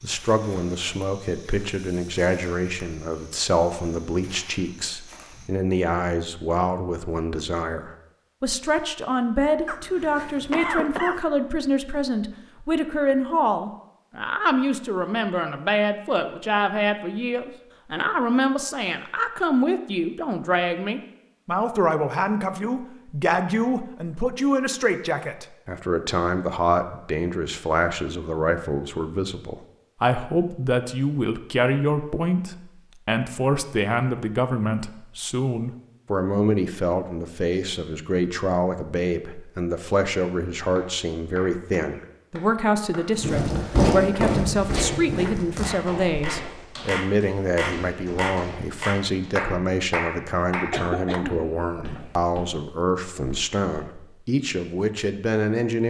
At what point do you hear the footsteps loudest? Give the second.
44 s.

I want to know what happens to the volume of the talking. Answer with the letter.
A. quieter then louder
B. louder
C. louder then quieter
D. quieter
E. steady
E.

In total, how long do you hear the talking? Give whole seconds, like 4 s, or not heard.
56 s.